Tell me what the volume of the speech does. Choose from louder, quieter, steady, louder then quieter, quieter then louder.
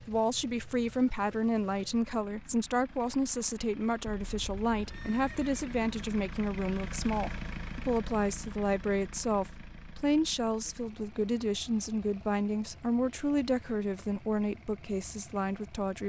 steady.